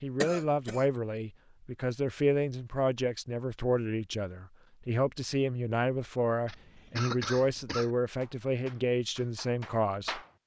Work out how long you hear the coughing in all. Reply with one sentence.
The coughing can be heard for 2 seconds in total.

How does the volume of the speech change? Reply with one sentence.
The loudness of the speech stays about the same.